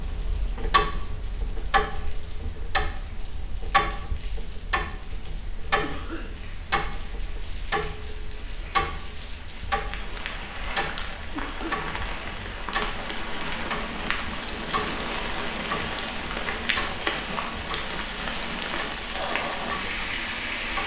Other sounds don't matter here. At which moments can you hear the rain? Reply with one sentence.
You can hear the rain from 0.0 to 20.8 s.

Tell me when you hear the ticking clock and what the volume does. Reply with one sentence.
You can hear the ticking clock from 0.0 to 20.8 s, getting quieter.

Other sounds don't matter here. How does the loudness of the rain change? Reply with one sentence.
The volume of the rain goes up.